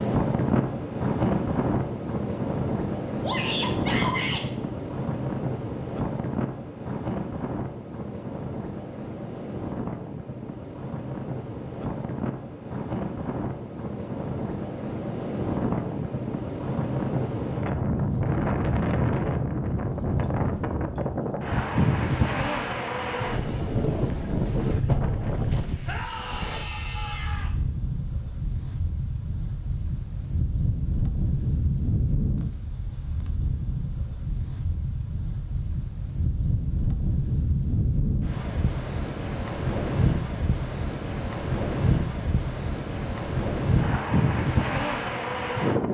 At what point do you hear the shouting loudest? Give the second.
4 s.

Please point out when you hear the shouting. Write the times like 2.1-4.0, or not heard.
3.2-4.5, 25.9-27.5.